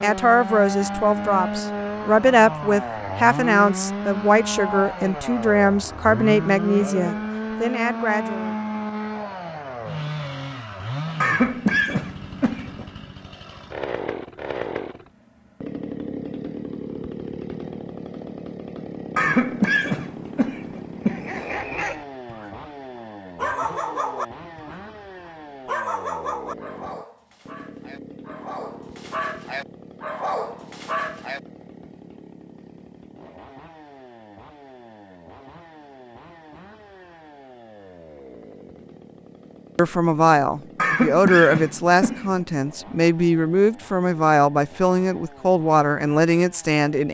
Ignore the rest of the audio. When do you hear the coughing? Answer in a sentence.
You can hear the coughing from 11.2 to 12.8 s, from 19.1 to 21.4 s and from 40.8 to 42.5 s.